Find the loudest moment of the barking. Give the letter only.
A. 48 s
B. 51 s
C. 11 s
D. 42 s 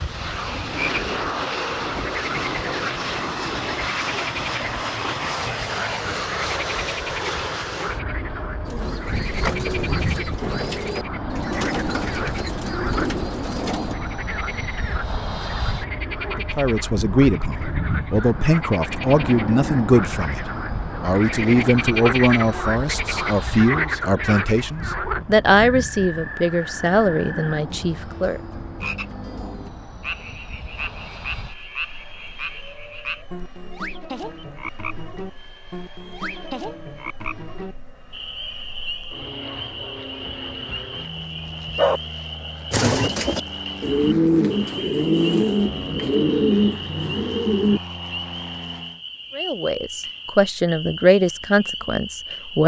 D.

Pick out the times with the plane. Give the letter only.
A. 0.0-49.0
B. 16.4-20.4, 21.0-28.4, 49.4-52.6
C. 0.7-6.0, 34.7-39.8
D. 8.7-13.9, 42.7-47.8
A.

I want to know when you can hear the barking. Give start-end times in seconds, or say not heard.
40.2-42.0.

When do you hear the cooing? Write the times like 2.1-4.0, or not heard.
8.7-13.9, 42.7-47.8.